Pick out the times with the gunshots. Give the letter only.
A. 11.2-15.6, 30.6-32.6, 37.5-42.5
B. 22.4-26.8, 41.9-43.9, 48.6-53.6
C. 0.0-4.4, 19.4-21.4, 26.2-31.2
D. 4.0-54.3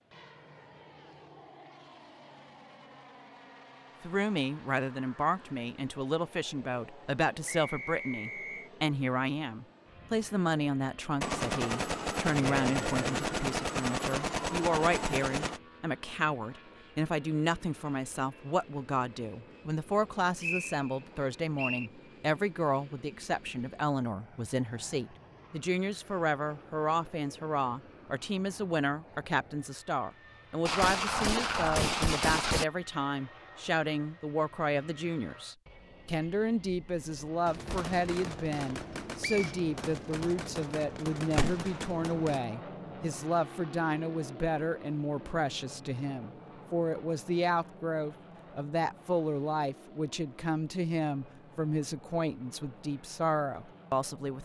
A.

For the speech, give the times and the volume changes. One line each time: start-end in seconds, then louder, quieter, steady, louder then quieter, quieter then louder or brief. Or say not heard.
4.0-54.3 steady.